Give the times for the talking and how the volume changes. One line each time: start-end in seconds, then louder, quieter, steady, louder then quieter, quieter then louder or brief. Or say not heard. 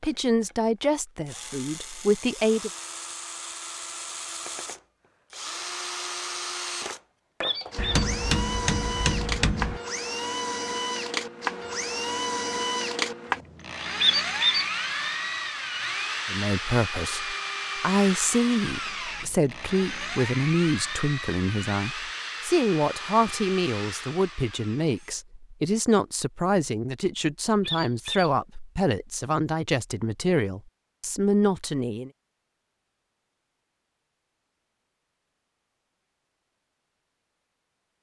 0.0-2.7 brief
16.2-32.1 steady.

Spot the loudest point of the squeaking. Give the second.
14 s.